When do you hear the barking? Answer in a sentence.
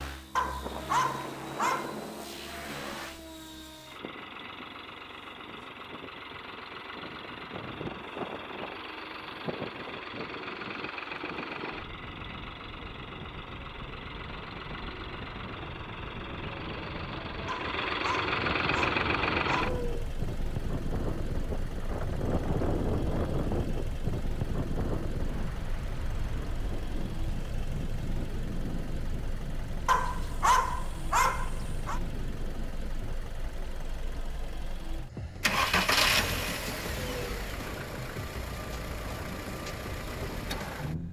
The barking can be heard from 0.3 to 1.9 s, from 17.4 to 20.1 s and from 29.9 to 32.0 s.